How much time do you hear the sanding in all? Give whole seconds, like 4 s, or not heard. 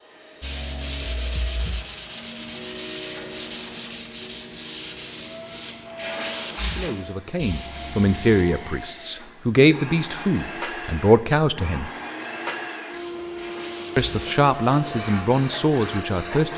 12 s.